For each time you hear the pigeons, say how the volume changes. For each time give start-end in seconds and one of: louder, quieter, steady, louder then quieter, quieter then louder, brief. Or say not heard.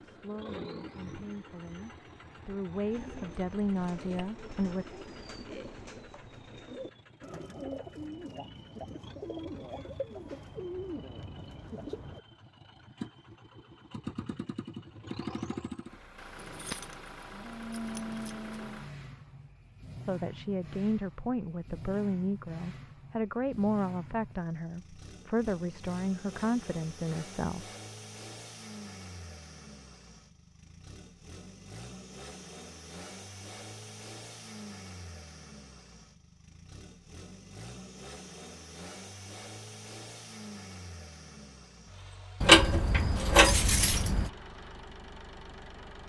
2.8-12.2 louder.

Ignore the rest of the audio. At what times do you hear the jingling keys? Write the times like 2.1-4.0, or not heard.
3.0-4.2, 16.4-18.9, 42.4-44.3.